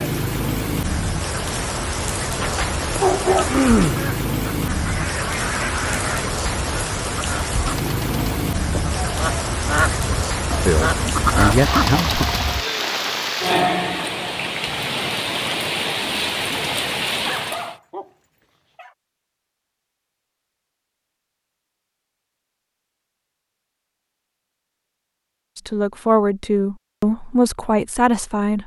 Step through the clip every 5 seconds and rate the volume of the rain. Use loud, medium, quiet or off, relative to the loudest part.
loud, loud, loud, loud, off, off.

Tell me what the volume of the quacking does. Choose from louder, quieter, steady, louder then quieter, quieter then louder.
quieter then louder.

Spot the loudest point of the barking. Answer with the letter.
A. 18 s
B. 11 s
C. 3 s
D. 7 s
C.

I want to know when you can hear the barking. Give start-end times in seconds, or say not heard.
2.4-3.5, 17.1-18.9.